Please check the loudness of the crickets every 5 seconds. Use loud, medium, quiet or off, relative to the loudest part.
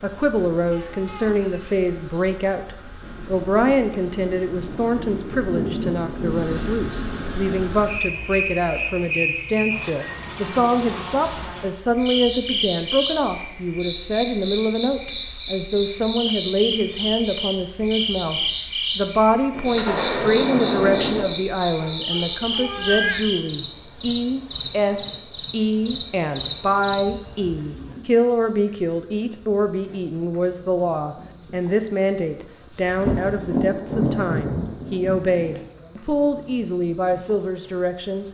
quiet, loud, loud, loud, loud, loud, loud, loud.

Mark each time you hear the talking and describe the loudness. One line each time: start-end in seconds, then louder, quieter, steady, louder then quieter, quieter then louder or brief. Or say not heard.
0.0-38.2 steady.